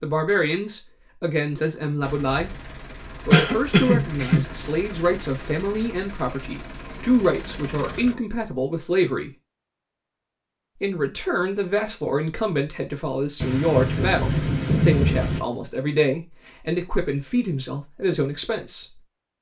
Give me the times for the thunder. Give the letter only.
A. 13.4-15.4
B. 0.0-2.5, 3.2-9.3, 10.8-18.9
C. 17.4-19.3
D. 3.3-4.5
A.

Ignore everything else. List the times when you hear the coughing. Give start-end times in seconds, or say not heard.
3.3-4.5.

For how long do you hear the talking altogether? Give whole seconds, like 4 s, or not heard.
17 s.